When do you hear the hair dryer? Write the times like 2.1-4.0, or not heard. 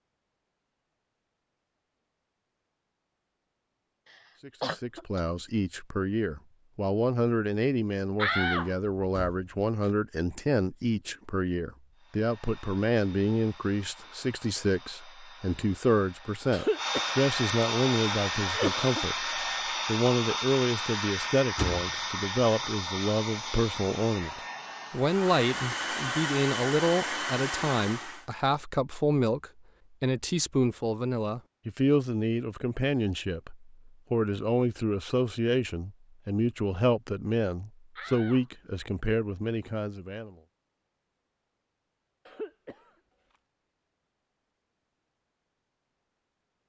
11.9-28.2.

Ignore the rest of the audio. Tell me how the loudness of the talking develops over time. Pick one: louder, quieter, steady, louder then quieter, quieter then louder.
steady.